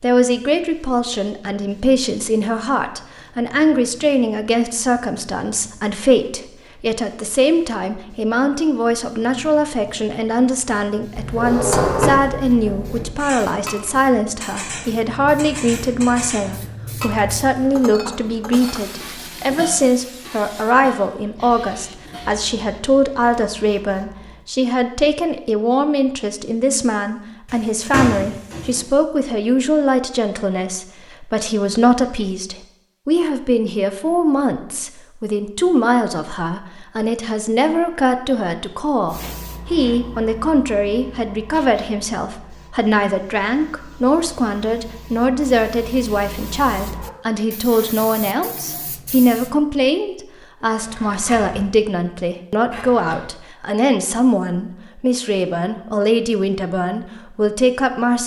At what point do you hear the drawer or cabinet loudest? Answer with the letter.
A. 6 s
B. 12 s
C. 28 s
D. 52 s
B.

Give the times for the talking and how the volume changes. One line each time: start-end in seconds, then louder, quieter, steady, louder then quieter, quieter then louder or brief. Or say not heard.
0.0-58.2 steady.